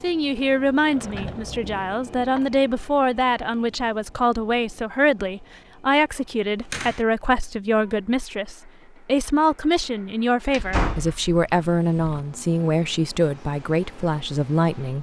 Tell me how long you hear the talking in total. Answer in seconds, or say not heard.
15 s.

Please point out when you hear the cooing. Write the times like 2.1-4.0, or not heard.
not heard.